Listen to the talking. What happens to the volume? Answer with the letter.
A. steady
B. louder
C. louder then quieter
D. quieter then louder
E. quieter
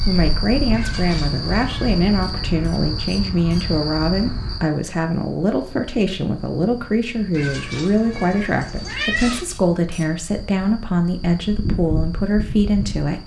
A.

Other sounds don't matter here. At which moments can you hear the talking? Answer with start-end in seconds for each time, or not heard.
0.1-13.2.